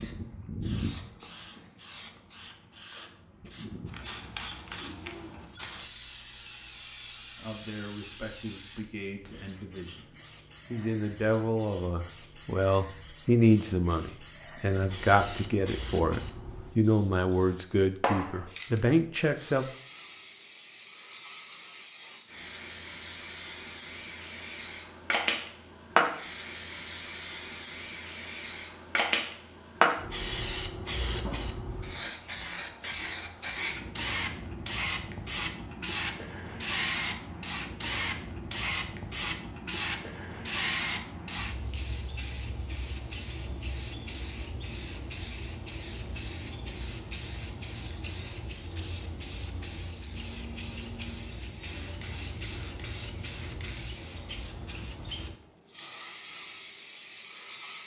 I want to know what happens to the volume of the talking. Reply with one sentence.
The volume of the talking goes up.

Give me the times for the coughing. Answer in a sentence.
The coughing can't be heard in this clip.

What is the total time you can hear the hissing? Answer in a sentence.
The hissing can be heard for 58 seconds in total.